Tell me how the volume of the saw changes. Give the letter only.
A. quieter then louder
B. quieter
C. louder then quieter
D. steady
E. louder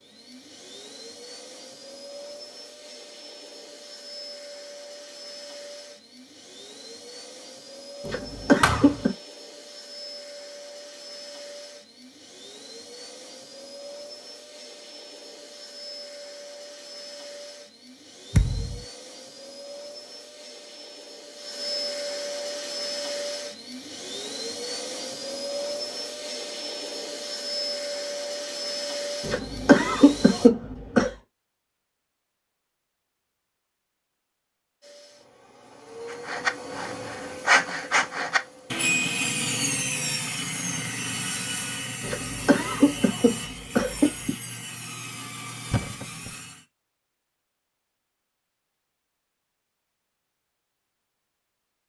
B.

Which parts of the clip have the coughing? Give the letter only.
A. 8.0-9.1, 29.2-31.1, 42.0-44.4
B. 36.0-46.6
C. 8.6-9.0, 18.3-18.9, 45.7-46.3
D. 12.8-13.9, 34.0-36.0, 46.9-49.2
A.